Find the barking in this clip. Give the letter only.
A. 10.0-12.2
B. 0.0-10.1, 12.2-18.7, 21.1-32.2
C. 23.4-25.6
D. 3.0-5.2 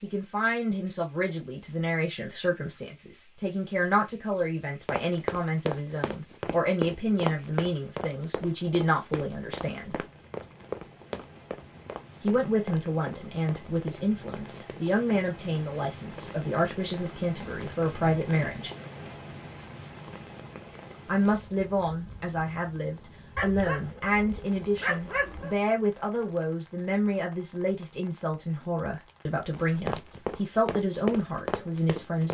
C.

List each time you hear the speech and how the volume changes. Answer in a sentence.
The speech can be heard from 0.0 to 10.1 s, at a steady volume; from 12.2 to 18.7 s, at a steady volume; and from 21.1 to 32.2 s, at a steady volume.